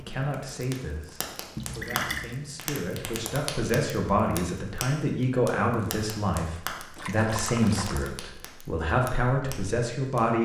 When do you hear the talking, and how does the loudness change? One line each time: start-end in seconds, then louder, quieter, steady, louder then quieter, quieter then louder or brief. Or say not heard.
0.0-10.4 louder.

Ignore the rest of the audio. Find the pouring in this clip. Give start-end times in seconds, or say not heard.
1.6-2.4, 7.0-8.1.